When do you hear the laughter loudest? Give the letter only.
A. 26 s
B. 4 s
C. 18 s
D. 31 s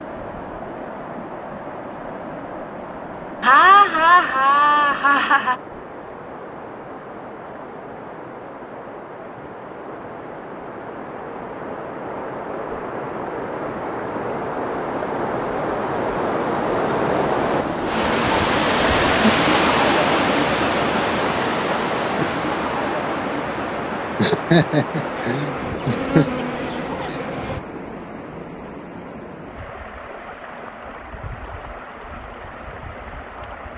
B.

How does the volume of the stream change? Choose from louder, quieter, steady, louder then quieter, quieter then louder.
louder then quieter.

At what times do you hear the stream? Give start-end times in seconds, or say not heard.
0.0-33.7.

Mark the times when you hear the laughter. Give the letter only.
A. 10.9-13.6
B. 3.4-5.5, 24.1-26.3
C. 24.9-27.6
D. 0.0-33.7
B.